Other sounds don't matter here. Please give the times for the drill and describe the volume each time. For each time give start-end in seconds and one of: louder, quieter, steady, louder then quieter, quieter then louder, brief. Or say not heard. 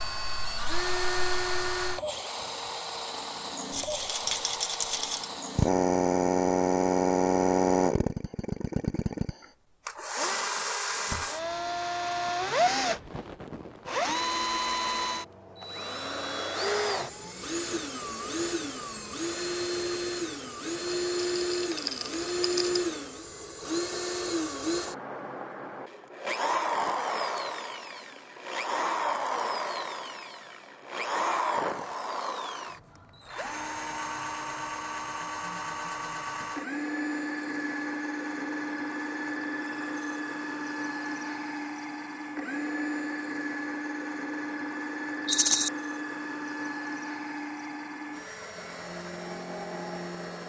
0.0-50.4 quieter.